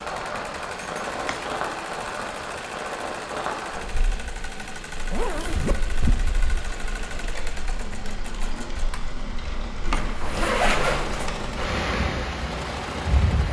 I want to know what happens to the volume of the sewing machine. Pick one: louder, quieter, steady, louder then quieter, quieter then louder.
steady.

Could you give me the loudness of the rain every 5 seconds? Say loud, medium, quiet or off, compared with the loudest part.
loud, medium, loud.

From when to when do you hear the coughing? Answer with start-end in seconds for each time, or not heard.
not heard.